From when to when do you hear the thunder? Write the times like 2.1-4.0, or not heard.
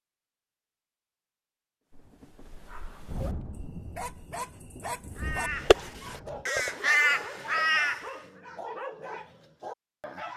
1.9-6.5.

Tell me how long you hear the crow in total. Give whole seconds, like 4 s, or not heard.
3 s.